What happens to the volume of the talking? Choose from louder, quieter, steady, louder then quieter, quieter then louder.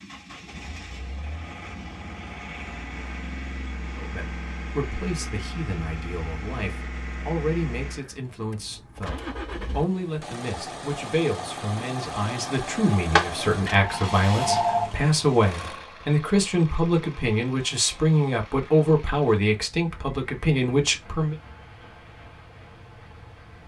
louder.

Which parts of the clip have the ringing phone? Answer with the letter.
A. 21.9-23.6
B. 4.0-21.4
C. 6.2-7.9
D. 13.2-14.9
D.